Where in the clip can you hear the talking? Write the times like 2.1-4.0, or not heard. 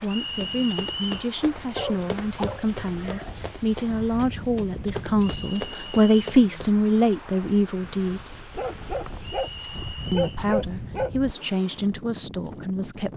0.0-8.6, 10.1-13.1.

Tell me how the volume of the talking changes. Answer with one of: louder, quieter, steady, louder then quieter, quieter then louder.
louder then quieter.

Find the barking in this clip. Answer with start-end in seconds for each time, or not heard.
1.8-3.4, 8.6-11.4.